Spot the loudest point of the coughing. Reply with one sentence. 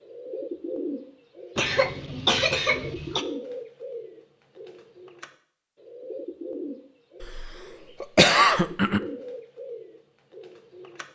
The loudest moment of the coughing is at 8 seconds.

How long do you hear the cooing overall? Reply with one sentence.
The cooing can be heard for 11 seconds in total.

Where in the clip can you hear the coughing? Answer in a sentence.
You can hear the coughing from 1.6 to 3.2 s and from 7.2 to 9.0 s.